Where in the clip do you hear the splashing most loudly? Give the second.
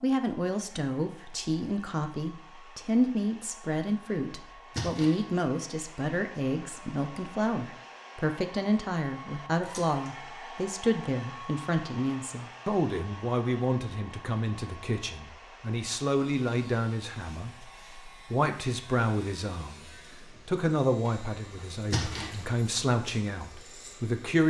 22 s.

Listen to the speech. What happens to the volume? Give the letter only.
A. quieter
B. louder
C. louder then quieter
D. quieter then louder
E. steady
E.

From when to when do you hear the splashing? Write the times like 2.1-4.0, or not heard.
4.8-5.2, 9.6-10.1, 21.9-22.4.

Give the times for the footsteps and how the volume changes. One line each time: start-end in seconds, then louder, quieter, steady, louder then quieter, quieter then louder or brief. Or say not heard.
not heard.